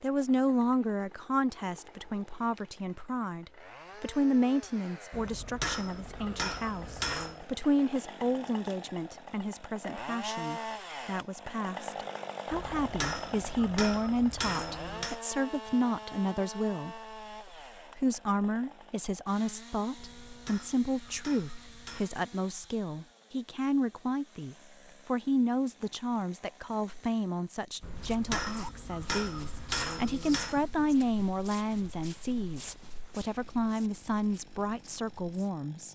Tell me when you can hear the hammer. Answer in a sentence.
The hammer can be heard from 5.1 to 7.5 s, from 12.5 to 15.2 s, from 19.9 to 22.1 s and from 27.8 to 30.6 s.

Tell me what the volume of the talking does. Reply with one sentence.
The loudness of the talking stays about the same.